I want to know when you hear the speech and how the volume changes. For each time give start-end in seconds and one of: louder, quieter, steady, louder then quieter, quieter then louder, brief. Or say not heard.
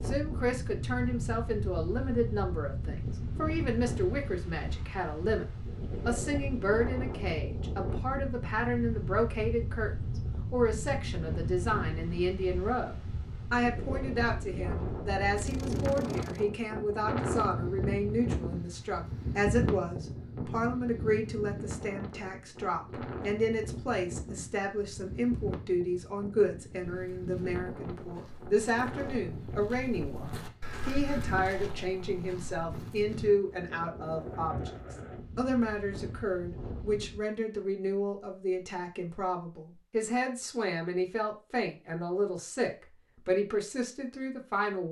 0.1-9.9 steady
10.5-44.8 steady.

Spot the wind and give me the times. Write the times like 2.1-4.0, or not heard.
0.0-37.2.